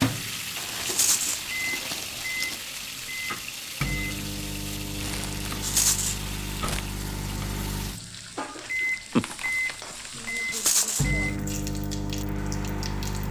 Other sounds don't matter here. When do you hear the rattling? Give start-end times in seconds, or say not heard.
0.8-1.4, 5.6-6.2, 10.5-11.1.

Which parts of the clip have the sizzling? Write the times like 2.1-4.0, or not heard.
0.0-13.2.